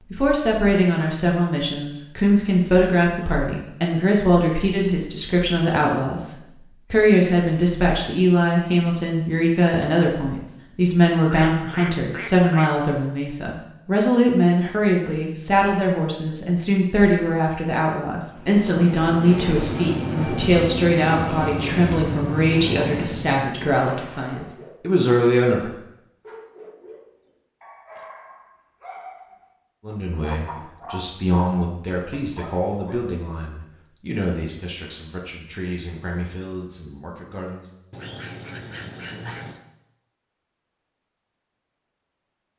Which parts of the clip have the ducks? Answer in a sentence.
The ducks can be heard from 11.3 to 12.7 s and from 37.9 to 39.6 s.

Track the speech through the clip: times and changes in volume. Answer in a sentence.
You can hear the speech from 0.1 to 25.7 s, at a steady volume; and from 29.9 to 37.7 s, getting quieter.